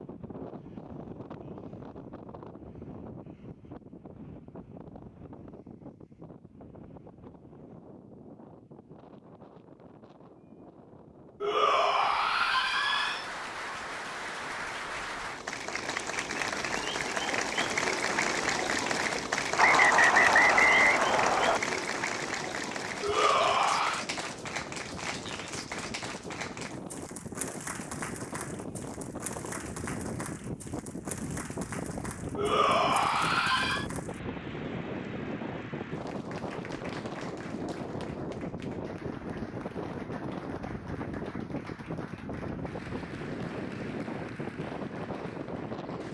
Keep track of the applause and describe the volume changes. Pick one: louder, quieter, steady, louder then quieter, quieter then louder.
quieter.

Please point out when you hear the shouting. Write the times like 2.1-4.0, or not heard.
11.4-13.3, 23.0-24.1, 32.4-33.9.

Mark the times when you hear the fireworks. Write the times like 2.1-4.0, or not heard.
not heard.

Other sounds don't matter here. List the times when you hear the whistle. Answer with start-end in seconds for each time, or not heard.
19.6-21.6.